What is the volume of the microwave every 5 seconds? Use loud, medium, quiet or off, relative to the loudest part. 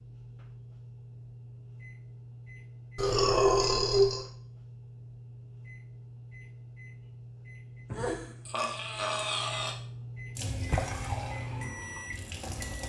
medium, medium, loud.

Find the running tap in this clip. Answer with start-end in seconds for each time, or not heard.
10.3-12.8.